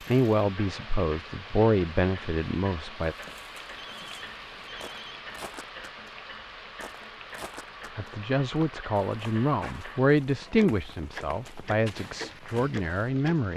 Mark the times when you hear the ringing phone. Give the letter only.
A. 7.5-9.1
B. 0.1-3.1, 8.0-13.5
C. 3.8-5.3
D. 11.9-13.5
C.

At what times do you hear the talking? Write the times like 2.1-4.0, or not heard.
0.1-3.1, 8.0-13.5.